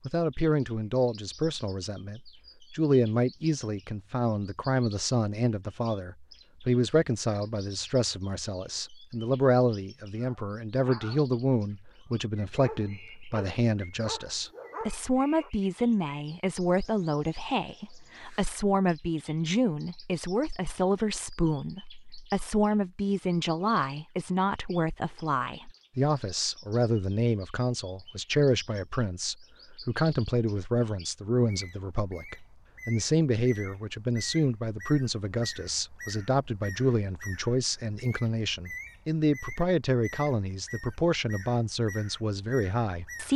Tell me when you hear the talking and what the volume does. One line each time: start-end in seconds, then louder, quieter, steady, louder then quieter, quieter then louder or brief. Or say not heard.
0.1-43.3 steady.